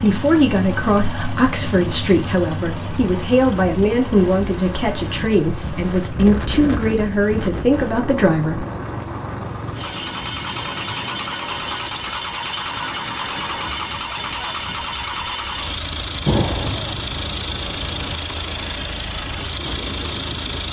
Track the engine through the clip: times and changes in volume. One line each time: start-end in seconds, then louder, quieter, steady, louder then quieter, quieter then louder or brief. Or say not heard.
0.0-20.6 quieter then louder.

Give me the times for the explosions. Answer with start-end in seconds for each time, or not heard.
16.2-16.9.